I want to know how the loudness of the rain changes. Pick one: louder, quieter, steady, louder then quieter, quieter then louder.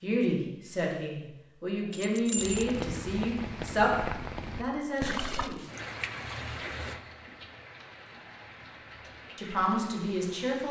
quieter.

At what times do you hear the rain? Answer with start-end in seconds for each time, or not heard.
2.4-10.6.